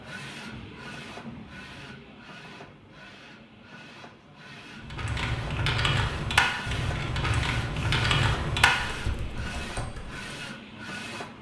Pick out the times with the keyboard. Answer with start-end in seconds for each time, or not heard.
4.8-10.3.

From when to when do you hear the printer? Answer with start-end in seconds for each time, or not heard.
0.0-11.3.